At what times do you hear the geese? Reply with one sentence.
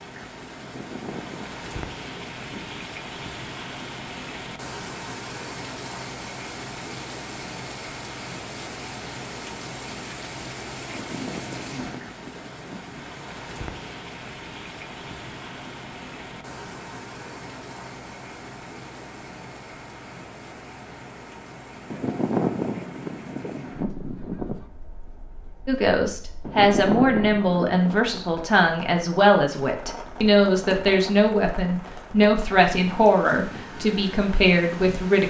You can hear the geese from 0.6 to 2.8 s, from 10.8 to 13.1 s, from 21.9 to 24.6 s and from 26.4 to 27.8 s.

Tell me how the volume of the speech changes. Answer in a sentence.
The volume of the speech stays about the same.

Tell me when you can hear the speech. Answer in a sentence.
You can hear the speech from 25.6 to 35.2 s.